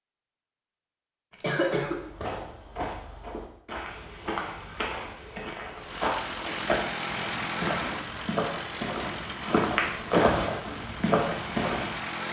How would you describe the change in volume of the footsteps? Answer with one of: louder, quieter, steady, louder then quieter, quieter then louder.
louder.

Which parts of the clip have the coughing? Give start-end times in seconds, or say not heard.
1.3-2.0, 10.1-10.6.